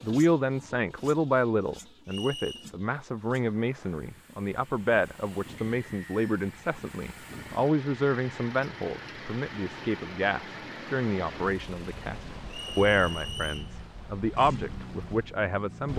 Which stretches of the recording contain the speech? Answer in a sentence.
You can hear the speech from 0.0 to 15.9 s.